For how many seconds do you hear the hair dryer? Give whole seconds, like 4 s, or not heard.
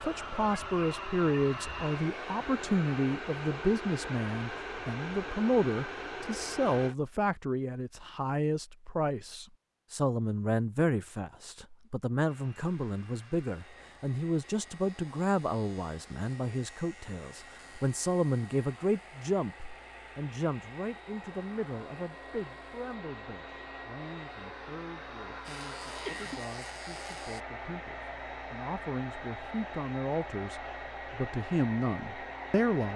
28 s.